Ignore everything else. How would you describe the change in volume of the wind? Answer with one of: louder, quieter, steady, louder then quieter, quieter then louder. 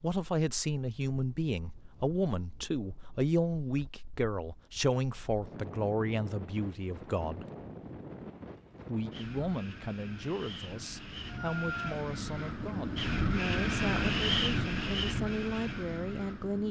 louder.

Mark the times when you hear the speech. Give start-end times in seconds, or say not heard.
0.0-7.5, 8.8-16.6.